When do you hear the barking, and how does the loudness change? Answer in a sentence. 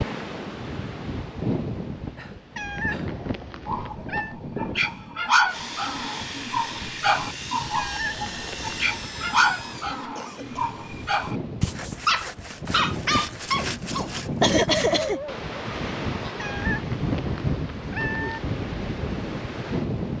You can hear the barking from 3.6 to 15.5 s, at a steady volume.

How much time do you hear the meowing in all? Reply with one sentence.
The meowing can be heard for 5 seconds in total.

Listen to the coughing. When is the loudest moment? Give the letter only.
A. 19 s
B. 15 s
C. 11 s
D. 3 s
B.